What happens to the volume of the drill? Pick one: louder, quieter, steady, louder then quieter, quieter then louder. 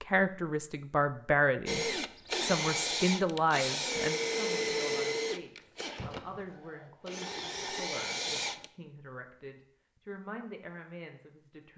quieter then louder.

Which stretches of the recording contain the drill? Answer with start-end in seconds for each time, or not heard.
1.6-8.7.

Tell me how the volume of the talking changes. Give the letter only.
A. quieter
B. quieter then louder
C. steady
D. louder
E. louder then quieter
A.